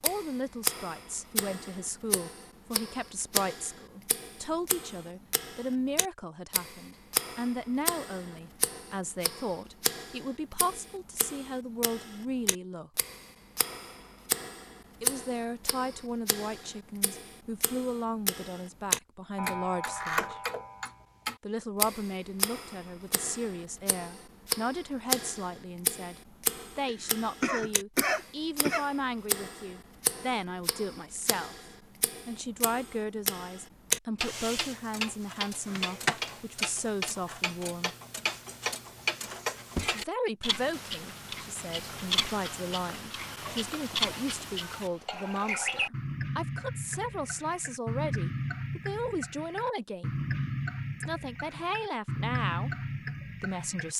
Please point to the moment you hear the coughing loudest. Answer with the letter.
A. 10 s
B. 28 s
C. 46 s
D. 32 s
B.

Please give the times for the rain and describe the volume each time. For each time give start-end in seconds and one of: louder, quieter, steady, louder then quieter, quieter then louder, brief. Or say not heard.
not heard.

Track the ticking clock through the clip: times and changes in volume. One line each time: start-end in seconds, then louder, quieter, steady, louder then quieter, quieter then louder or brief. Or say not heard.
0.0-53.9 steady.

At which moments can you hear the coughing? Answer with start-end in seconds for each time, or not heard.
26.9-28.9.